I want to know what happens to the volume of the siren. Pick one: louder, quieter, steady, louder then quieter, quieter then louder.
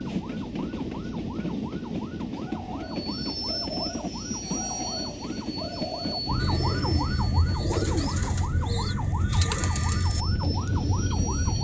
louder.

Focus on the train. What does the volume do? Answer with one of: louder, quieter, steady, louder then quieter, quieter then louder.
quieter.